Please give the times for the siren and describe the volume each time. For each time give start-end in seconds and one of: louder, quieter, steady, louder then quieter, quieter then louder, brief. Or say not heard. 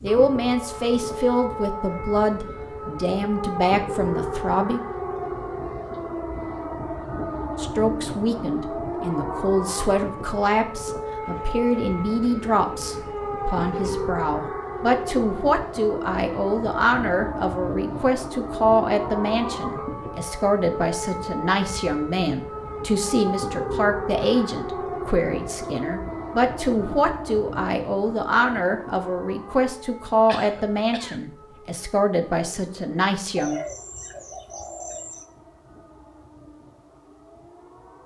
0.0-38.0 quieter.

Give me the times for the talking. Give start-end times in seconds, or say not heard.
0.0-4.8, 7.5-33.6.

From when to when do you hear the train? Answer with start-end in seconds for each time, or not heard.
not heard.